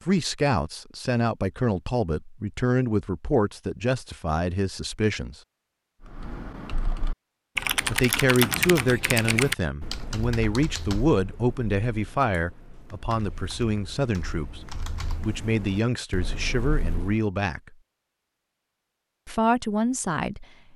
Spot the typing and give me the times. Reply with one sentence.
The typing can be heard from 6.0 to 17.2 s.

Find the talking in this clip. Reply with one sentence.
The talking can be heard from 0.1 to 5.3 s, from 7.8 to 14.6 s, from 15.2 to 17.6 s and from 19.2 to 20.4 s.